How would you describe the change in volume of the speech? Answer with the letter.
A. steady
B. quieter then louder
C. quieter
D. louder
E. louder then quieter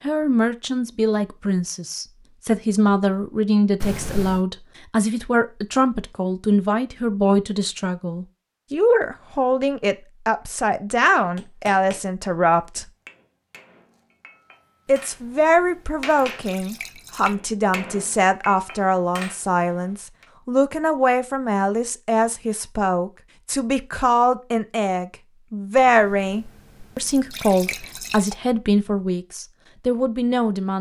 A.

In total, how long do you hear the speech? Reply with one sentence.
You can hear the speech for 29 seconds altogether.